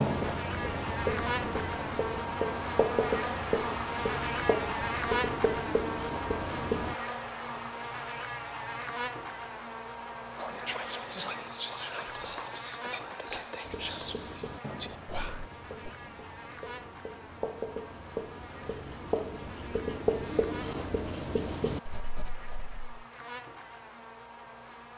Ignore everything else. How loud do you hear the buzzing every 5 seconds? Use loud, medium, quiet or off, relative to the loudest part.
loud, loud, medium, quiet, quiet.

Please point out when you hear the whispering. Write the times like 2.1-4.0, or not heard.
10.3-15.9.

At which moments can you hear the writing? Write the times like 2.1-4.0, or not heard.
0.0-7.0, 13.6-22.9.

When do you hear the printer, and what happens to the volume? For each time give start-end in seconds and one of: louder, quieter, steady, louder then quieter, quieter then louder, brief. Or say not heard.
not heard.